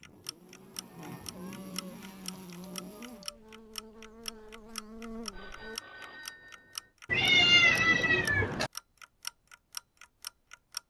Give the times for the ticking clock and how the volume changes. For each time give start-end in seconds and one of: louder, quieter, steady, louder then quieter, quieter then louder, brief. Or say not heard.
0.0-10.8 louder.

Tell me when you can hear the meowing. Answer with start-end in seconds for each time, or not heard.
1.2-3.4, 7.0-8.7.